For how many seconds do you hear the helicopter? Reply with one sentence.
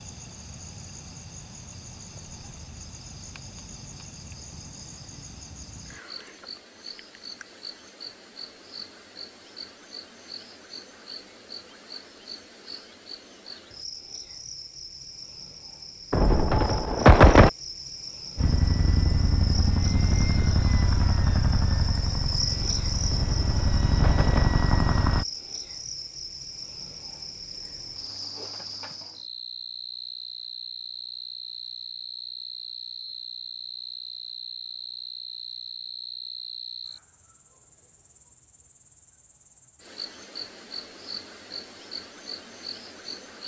You can hear the helicopter for 7 seconds altogether.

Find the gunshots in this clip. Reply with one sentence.
You can hear the gunshots from 16.1 to 17.5 s and from 23.1 to 24.5 s.